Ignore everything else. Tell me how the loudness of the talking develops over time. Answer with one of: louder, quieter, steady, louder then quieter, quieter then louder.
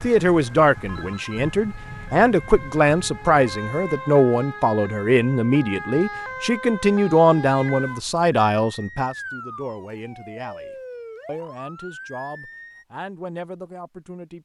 quieter.